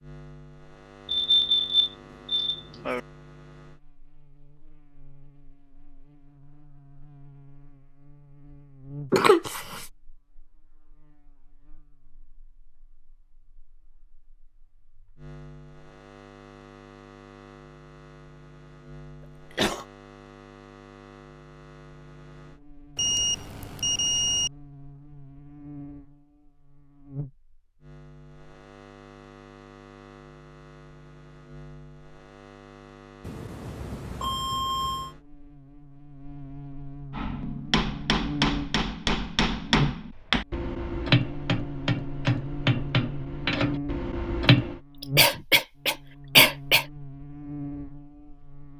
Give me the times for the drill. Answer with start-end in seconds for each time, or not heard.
not heard.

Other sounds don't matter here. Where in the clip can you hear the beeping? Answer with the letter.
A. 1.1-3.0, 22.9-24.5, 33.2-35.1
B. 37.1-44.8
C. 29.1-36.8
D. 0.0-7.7
A.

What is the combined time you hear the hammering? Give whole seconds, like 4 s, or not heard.
8 s.